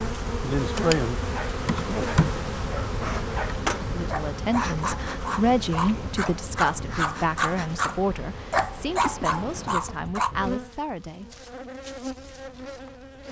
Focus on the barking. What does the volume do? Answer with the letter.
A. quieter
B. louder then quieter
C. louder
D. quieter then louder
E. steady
C.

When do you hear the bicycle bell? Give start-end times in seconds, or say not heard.
not heard.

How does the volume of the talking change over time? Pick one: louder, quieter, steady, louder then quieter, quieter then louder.
quieter.